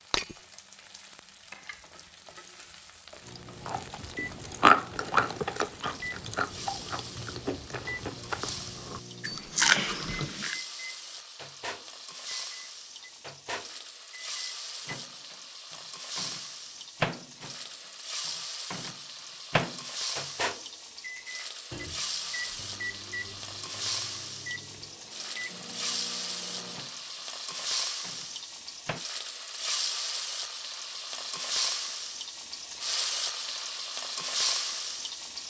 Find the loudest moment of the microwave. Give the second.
20 s.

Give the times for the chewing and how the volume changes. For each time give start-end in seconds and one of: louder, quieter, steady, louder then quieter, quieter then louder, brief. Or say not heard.
3.6-10.6 quieter then louder.